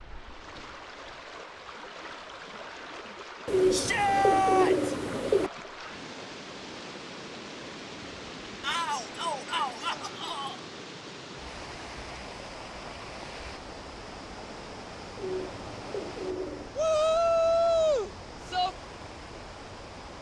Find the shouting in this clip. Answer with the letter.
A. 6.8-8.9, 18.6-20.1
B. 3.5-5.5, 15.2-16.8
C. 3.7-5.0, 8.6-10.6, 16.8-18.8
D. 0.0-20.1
C.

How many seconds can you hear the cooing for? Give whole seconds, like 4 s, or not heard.
4 s.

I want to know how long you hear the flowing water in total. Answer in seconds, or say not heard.
20 s.